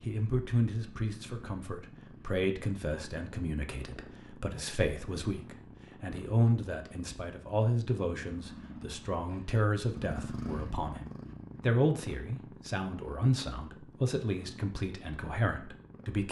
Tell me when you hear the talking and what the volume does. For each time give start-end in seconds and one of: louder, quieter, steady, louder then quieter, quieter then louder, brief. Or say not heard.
0.0-16.2 steady.